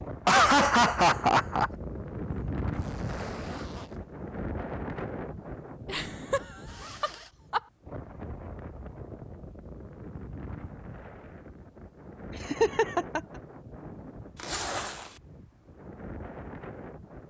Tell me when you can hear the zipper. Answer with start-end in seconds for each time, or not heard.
2.7-4.0, 6.7-7.3, 14.3-15.2.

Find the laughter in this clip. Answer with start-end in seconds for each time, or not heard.
0.2-1.7, 5.8-6.4, 7.0-7.6, 12.4-13.2.